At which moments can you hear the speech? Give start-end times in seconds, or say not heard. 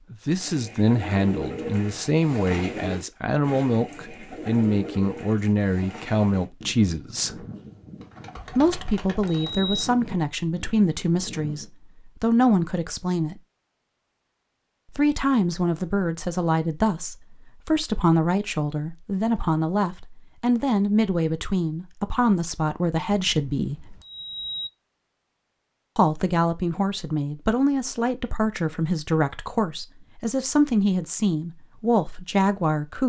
0.1-7.5, 8.6-13.4, 14.9-23.9, 25.9-33.0.